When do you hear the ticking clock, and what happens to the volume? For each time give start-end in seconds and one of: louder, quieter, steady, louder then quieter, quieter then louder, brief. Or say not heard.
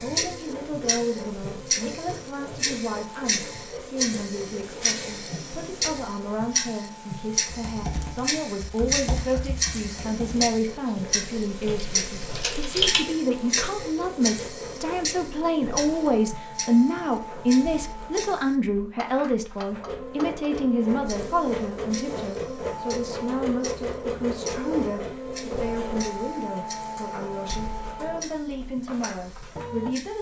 0.0-30.1 quieter.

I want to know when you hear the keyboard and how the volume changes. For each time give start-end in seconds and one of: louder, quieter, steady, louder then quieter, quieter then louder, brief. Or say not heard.
7.5-13.1 quieter then louder.